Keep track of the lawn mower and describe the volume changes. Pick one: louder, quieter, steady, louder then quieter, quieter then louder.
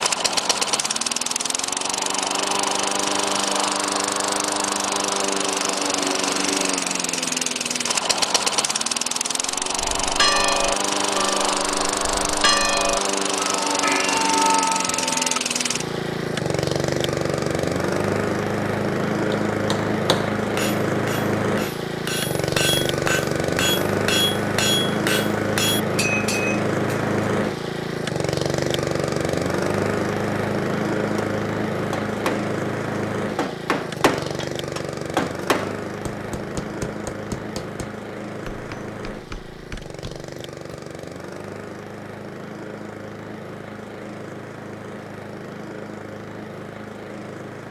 quieter.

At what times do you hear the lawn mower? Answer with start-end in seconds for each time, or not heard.
0.0-47.6.